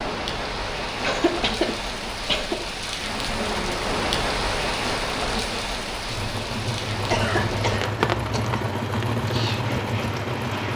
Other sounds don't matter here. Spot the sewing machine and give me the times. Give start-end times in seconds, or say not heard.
6.0-10.7.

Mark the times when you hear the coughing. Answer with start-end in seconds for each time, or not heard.
1.0-2.5, 7.1-8.6.